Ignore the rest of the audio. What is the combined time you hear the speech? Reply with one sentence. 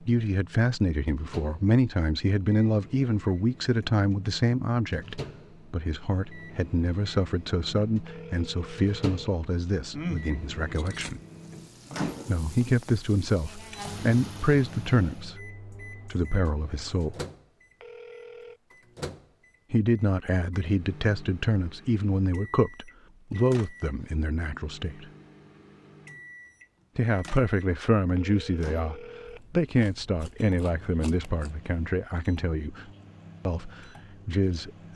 You can hear the speech for 29 seconds altogether.